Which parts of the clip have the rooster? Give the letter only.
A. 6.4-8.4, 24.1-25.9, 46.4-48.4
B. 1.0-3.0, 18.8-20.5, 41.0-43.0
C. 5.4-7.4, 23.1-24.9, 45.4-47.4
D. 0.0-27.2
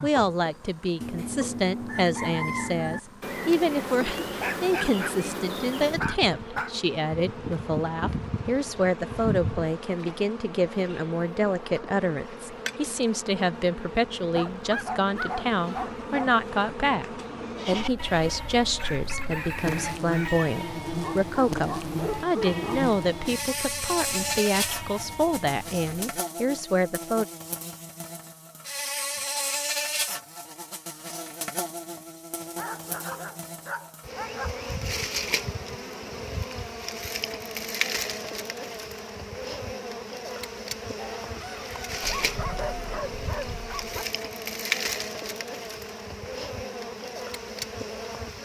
B.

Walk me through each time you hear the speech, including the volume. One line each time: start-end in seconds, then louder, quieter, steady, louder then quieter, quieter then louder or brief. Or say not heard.
0.0-27.2 steady.